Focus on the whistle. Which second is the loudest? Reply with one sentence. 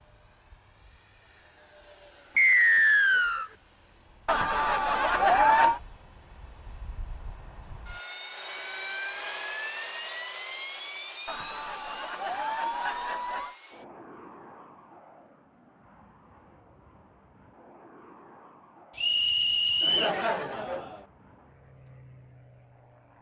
The volume of the whistle peaks at 3 seconds.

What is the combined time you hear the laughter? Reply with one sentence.
You can hear the laughter for 5 seconds altogether.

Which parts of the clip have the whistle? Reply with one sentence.
The whistle can be heard from 2.4 to 3.5 s and from 18.9 to 20.1 s.